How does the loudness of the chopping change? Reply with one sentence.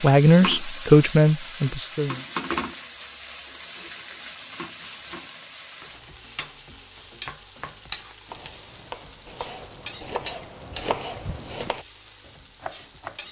The volume of the chopping goes up.